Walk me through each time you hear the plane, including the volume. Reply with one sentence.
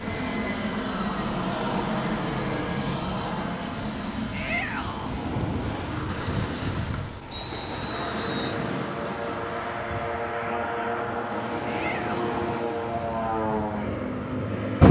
You can hear the plane from 0.0 to 14.8 s, getting quieter then louder.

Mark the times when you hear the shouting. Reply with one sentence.
The shouting can be heard from 4.3 to 5.2 s and from 11.7 to 12.3 s.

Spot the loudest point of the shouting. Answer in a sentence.
The loudest moment of the shouting is at 5 seconds.